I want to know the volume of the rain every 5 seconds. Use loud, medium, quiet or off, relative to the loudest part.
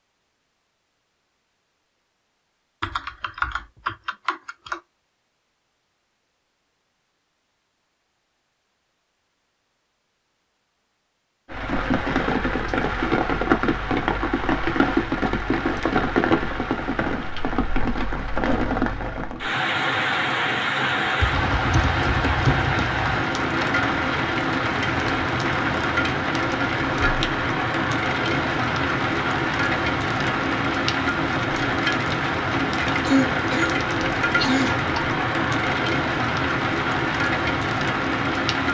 off, off, loud, loud, loud, loud, loud, loud.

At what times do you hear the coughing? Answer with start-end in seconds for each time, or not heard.
33.0-34.9.